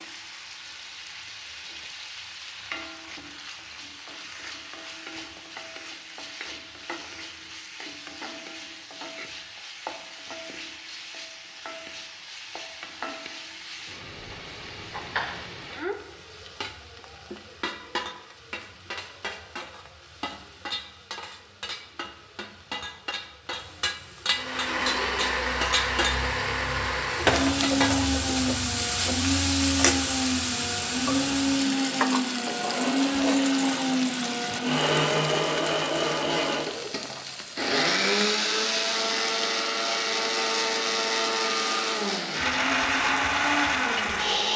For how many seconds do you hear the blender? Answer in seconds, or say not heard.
20 s.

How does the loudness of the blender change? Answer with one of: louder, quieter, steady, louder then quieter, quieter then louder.
steady.